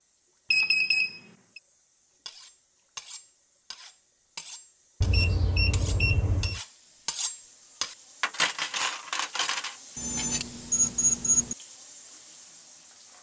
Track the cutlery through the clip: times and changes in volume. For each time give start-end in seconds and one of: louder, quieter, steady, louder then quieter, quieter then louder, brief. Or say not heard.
2.2-10.4 louder.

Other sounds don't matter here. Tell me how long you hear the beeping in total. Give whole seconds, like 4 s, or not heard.
4 s.